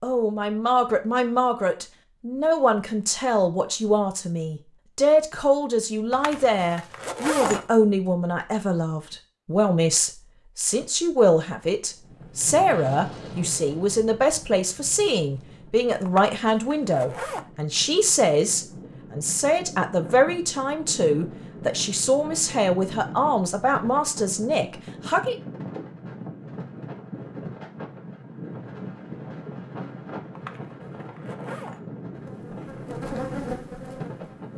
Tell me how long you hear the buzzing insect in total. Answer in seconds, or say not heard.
2 s.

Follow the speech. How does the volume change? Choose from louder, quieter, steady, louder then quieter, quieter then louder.
steady.